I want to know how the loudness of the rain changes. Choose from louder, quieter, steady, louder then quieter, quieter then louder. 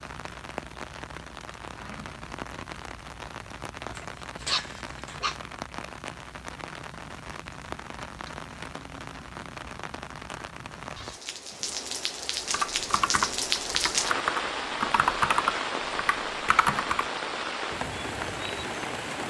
louder.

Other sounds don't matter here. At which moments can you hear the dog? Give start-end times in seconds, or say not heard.
4.0-5.4.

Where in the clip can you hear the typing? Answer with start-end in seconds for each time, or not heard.
12.5-17.1.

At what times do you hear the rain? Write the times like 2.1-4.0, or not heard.
0.0-19.2.